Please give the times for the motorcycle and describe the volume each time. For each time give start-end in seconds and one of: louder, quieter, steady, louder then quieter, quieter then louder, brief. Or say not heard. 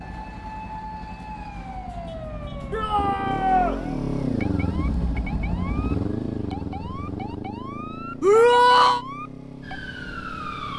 0.0-10.7 louder then quieter.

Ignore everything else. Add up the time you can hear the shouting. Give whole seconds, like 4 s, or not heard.
2 s.